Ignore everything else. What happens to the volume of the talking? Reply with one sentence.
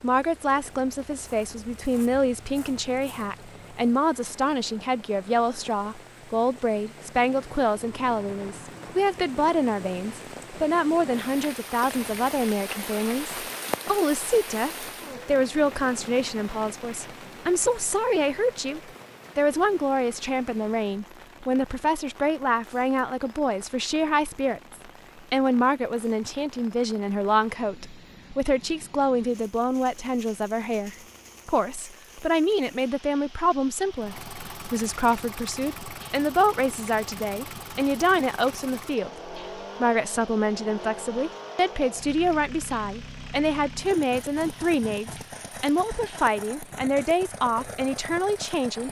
The volume of the talking stays about the same.